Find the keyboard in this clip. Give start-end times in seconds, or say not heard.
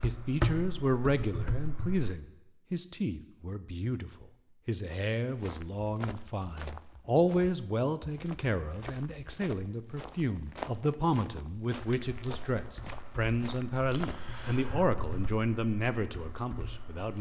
0.0-2.1, 11.9-17.1.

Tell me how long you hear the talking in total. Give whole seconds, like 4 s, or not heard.
17 s.